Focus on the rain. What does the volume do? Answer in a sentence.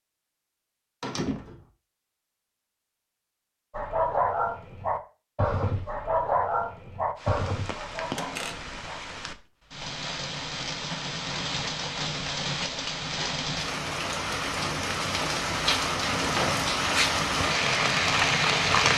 The volume of the rain goes up.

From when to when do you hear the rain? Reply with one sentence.
The rain can be heard from 7.2 to 18.9 s.